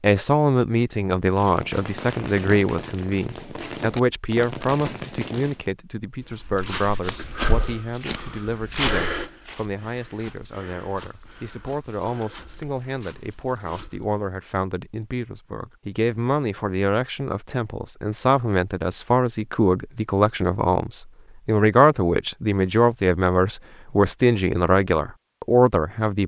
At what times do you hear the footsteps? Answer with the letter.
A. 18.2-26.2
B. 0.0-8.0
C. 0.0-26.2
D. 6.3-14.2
D.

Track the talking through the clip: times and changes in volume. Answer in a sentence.
You can hear the talking from 0.0 to 26.2 s, getting quieter then louder.